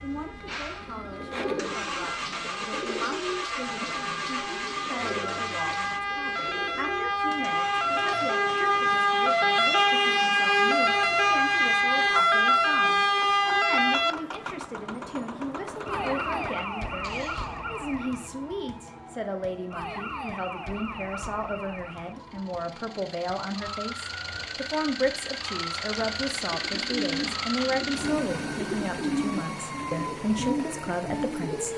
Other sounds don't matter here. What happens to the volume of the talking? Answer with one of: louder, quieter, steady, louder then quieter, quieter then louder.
louder.